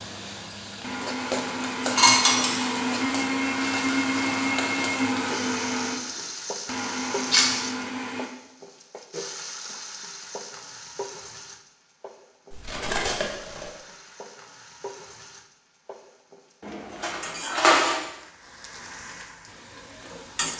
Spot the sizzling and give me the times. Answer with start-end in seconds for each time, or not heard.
0.0-20.5.